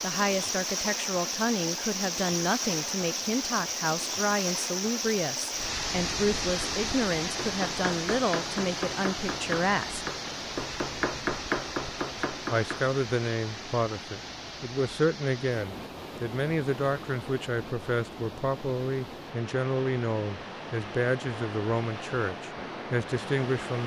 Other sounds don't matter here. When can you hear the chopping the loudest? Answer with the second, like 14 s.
11 s.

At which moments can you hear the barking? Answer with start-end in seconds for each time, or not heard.
not heard.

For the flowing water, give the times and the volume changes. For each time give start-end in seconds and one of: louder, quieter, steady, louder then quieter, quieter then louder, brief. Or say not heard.
0.0-23.8 quieter.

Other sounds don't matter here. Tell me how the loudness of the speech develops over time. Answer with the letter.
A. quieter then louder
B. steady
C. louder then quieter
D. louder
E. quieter
B.